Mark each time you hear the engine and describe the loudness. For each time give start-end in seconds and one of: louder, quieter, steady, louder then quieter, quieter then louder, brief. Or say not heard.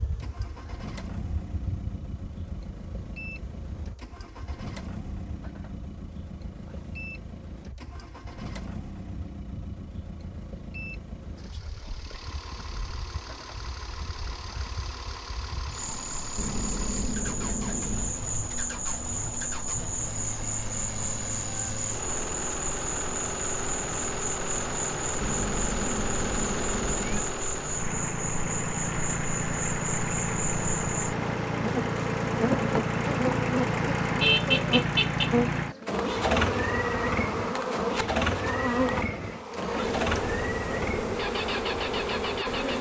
0.0-42.7 louder.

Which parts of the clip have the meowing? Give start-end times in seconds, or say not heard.
16.4-18.1, 25.2-27.2.